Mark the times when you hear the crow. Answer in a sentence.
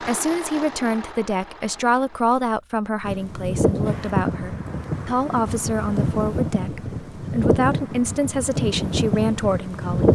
You can't hear the crow here.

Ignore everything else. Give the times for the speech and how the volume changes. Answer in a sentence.
You can hear the speech from 0.0 to 10.0 s, at a steady volume.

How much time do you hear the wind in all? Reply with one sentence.
You can hear the wind for 7 seconds altogether.